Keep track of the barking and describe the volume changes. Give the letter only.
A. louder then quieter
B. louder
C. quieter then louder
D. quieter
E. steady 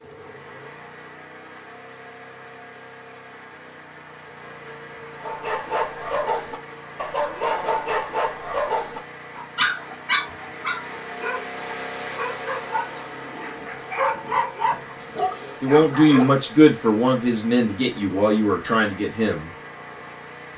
C.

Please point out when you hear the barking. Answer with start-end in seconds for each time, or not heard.
5.2-16.4.